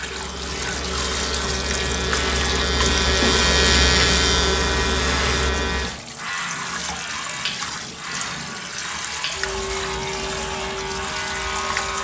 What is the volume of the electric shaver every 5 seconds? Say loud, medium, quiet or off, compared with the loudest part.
loud, medium, medium.